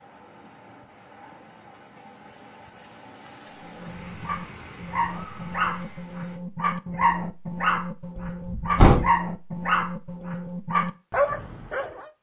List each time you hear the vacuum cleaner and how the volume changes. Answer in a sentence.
You can't hear the vacuum cleaner here.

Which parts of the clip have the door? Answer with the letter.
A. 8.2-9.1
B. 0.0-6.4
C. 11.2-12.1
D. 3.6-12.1
A.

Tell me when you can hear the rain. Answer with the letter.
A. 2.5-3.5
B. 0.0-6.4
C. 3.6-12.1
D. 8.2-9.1
B.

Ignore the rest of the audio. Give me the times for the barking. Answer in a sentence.
The barking can be heard from 3.6 to 12.1 s.